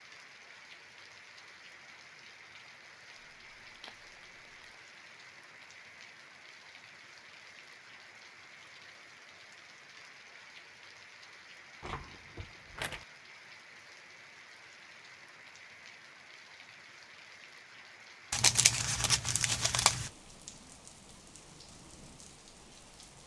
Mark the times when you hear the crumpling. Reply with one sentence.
The crumpling can be heard from 3.2 to 4.8 s, from 11.8 to 13.1 s and from 18.3 to 20.1 s.